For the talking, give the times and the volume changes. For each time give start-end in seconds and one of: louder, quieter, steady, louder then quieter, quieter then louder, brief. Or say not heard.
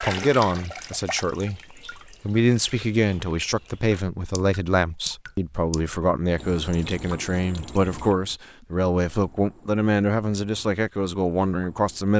0.0-12.1 steady.